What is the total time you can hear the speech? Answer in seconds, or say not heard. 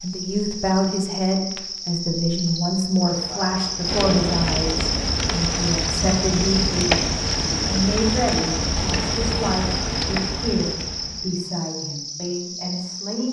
13 s.